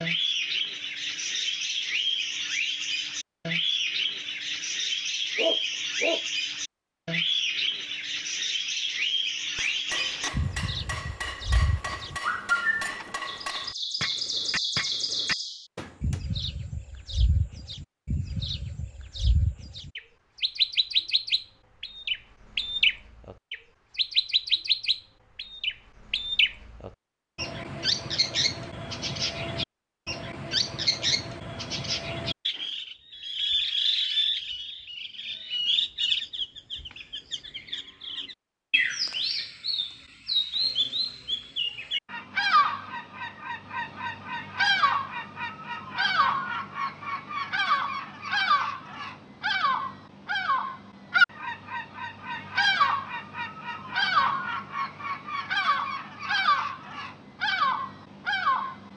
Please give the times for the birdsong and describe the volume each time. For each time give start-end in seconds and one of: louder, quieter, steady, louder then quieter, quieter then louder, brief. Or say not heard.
0.0-58.9 steady.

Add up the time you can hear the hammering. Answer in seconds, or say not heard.
7 s.